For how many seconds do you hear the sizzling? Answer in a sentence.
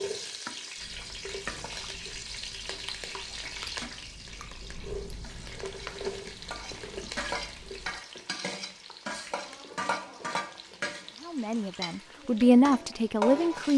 You can hear the sizzling for 14 seconds altogether.